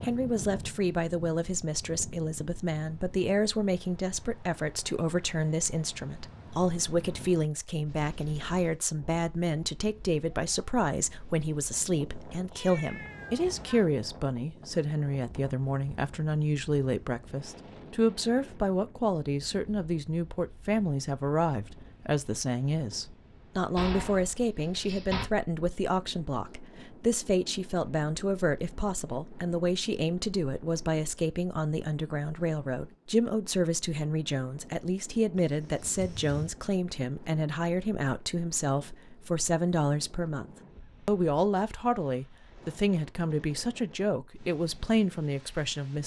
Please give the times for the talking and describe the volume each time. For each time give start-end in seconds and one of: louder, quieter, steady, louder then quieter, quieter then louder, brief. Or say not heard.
0.0-40.5 steady
41.0-46.0 steady.